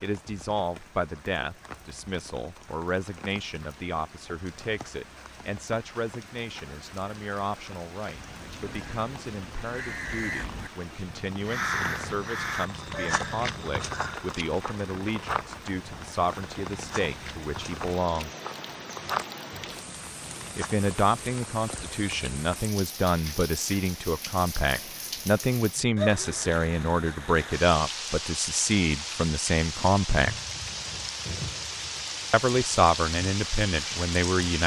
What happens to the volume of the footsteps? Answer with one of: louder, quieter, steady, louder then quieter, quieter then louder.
quieter then louder.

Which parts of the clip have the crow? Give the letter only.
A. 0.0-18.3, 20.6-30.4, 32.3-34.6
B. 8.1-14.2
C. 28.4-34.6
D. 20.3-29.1
B.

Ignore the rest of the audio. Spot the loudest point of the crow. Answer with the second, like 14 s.
12 s.